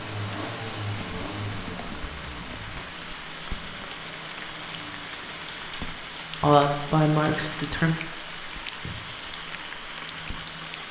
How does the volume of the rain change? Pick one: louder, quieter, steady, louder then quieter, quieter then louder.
steady.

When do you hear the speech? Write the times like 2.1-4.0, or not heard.
6.4-8.0.